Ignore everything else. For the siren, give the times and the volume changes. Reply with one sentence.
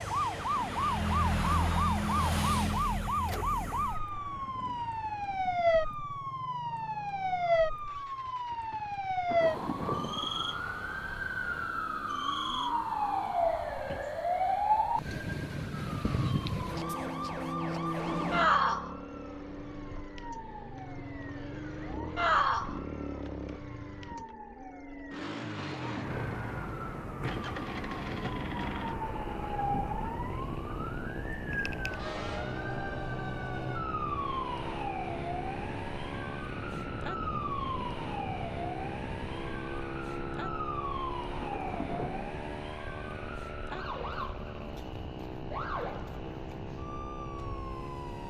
The siren can be heard from 0.0 to 48.2 s, getting quieter.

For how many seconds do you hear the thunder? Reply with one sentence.
You can hear the thunder for 3 seconds altogether.